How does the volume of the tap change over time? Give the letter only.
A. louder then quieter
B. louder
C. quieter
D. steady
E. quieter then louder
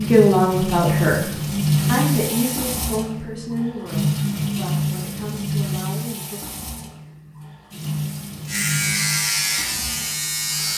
C.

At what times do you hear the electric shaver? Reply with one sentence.
The electric shaver can be heard from 8.4 to 10.7 s.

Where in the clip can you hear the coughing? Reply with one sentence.
You can't hear the coughing here.